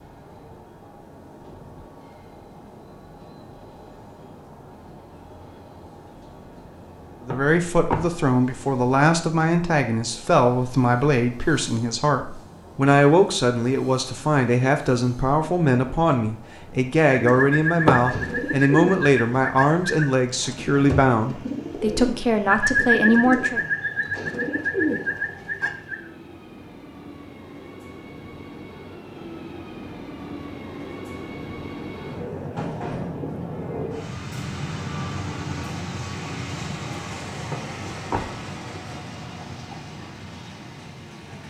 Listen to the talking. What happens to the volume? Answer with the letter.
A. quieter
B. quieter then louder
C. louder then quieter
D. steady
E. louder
D.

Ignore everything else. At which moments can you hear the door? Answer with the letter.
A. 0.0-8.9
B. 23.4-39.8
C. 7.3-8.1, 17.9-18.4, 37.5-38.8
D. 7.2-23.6
C.